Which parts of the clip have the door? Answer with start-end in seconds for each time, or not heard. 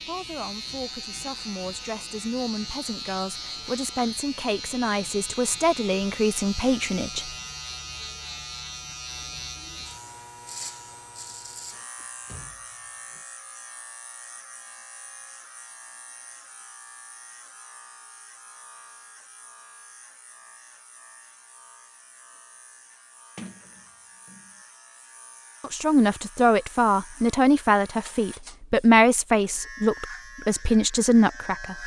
11.9-13.2, 23.4-24.5.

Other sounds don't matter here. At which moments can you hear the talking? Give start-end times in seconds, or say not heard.
0.1-7.2, 25.6-31.8.